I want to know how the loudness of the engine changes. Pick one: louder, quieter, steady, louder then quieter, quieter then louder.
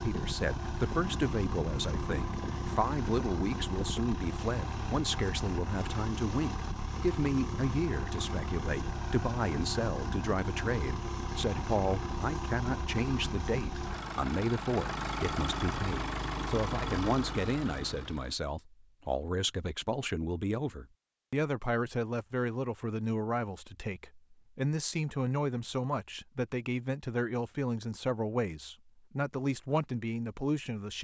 steady.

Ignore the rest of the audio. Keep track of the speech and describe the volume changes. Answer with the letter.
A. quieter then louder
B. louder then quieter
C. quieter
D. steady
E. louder
D.